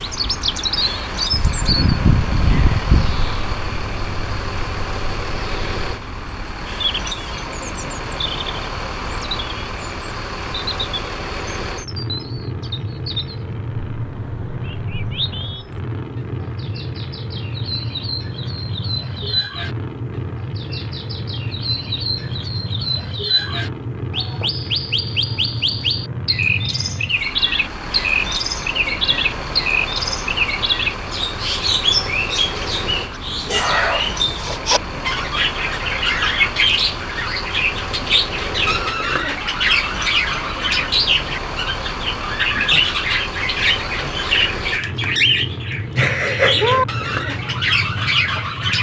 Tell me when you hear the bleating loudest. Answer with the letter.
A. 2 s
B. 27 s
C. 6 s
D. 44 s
A.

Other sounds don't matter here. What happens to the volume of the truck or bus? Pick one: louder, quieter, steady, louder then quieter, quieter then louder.
steady.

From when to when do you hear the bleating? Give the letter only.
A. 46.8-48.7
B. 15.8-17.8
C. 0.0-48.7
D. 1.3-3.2
D.